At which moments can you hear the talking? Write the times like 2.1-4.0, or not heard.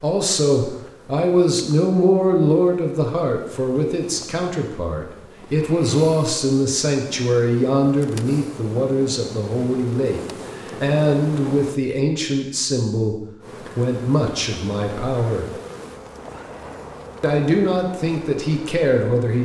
0.0-13.2, 13.8-15.4, 17.2-19.4.